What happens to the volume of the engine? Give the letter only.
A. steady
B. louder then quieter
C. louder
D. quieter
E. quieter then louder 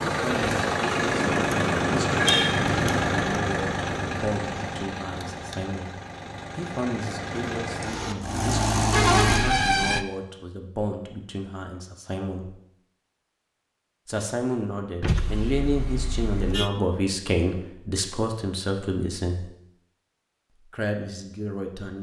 E.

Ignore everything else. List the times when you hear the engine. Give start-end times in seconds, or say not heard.
0.0-9.4.